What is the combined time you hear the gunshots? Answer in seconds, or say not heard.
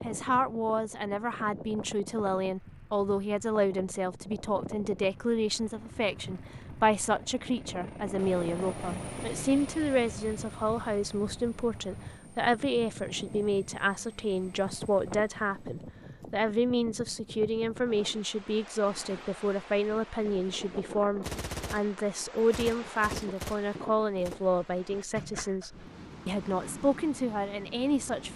3 s.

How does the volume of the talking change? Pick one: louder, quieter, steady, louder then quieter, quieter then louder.
steady.